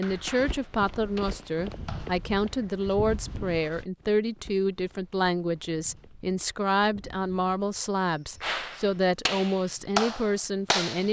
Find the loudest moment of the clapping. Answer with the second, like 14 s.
10 s.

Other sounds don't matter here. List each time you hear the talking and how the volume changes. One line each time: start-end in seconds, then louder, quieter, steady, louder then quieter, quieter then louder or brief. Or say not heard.
0.0-11.0 steady.